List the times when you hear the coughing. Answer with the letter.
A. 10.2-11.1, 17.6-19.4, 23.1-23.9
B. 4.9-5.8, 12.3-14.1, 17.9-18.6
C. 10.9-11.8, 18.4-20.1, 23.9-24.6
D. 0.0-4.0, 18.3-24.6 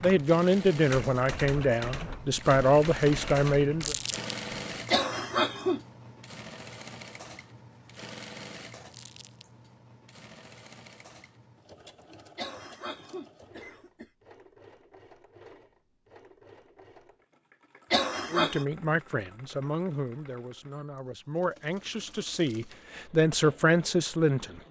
B.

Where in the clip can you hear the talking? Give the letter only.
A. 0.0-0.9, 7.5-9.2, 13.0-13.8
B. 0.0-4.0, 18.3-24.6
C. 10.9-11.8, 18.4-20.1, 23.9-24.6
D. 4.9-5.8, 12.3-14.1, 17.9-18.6
B.